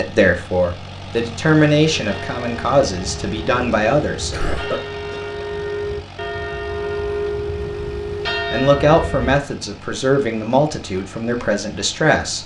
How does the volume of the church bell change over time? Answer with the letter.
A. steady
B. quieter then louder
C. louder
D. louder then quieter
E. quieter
C.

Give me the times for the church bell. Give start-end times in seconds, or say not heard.
1.9-9.4.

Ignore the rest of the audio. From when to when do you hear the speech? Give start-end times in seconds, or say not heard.
0.0-4.8, 8.5-12.4.